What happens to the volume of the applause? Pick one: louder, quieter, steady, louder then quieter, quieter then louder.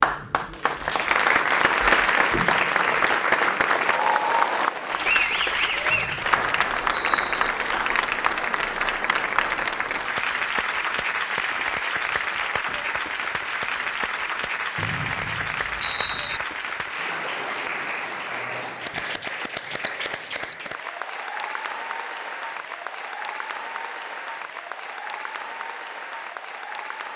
quieter.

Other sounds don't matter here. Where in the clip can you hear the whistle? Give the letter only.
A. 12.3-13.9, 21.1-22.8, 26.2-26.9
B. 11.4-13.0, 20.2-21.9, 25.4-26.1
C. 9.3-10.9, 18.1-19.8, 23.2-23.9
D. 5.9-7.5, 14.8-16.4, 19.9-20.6
D.